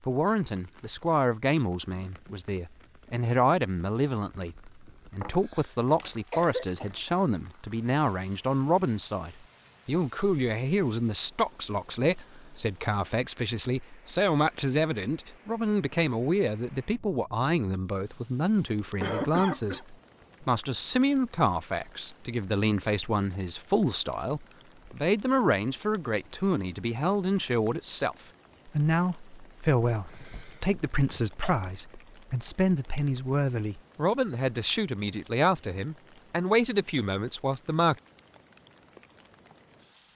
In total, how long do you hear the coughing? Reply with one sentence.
The coughing can be heard for 5 seconds in total.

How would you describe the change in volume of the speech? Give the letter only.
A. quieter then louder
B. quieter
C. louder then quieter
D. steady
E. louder
D.